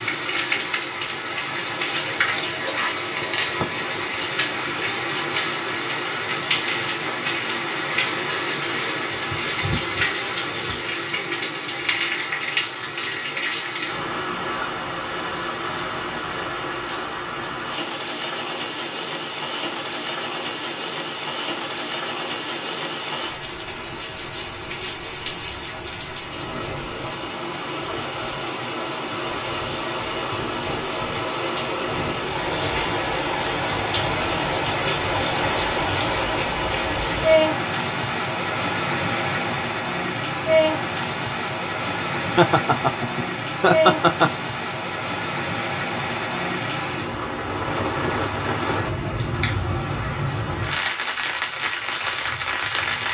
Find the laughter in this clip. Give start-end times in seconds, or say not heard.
42.4-44.4.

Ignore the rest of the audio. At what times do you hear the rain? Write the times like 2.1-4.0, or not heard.
0.0-53.0.